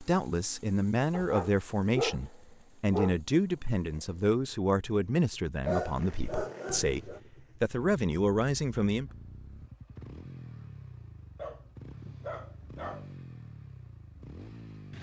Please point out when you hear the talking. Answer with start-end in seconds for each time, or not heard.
0.0-9.1.